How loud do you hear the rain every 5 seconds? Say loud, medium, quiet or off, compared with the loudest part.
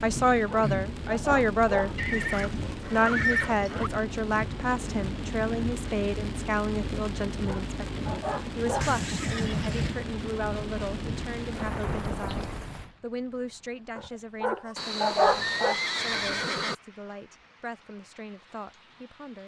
loud, loud, loud, quiet.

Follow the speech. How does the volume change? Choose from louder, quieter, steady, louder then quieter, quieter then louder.
quieter.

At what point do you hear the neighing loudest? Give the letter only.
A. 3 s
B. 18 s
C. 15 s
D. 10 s
A.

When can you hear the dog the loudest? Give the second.
15 s.